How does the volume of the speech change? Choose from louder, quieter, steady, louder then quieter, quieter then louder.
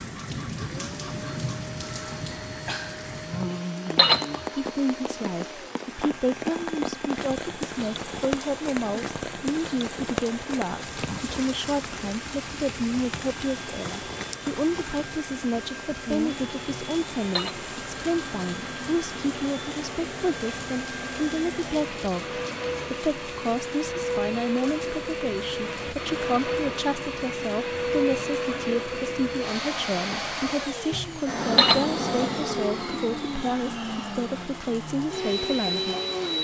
steady.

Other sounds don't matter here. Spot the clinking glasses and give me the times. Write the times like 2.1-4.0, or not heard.
3.3-4.5, 16.6-17.6, 30.9-31.9.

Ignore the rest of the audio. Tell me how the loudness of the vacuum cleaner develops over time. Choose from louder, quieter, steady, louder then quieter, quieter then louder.
louder.